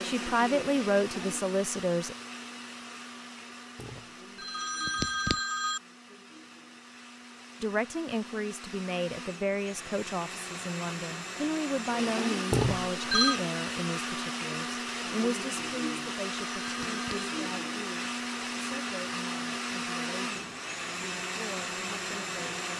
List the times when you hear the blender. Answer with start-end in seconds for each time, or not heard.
0.0-22.7.